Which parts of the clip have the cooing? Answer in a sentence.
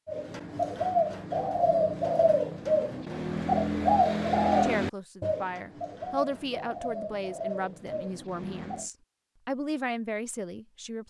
The cooing can be heard from 0.1 to 8.8 s.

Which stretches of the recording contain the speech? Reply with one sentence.
You can hear the speech from 4.6 to 11.0 s.